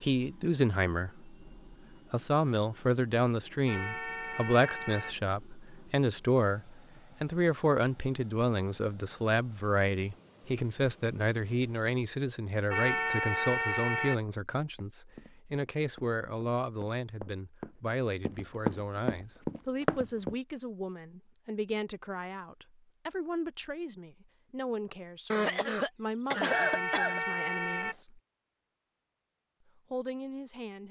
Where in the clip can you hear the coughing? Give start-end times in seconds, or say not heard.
25.3-27.2.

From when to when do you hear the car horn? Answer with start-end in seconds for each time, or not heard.
3.6-5.2, 12.7-14.2, 26.4-27.9.